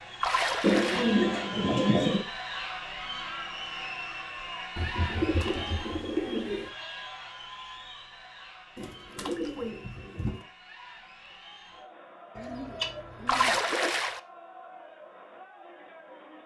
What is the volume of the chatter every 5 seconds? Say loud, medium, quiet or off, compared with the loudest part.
loud, medium, quiet, quiet.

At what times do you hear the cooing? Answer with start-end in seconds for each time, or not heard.
0.6-2.2, 4.8-6.7, 8.8-10.4, 12.3-13.6.